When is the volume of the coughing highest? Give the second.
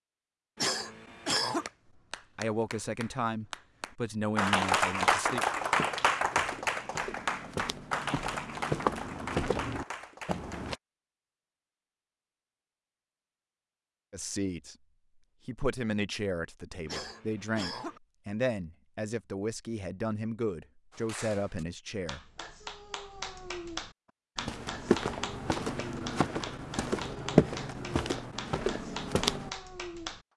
1 s.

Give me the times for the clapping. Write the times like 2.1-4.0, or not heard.
1.4-10.8, 20.9-30.2.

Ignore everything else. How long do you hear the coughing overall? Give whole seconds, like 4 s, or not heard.
2 s.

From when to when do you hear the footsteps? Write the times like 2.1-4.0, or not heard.
5.4-10.8, 24.4-29.5.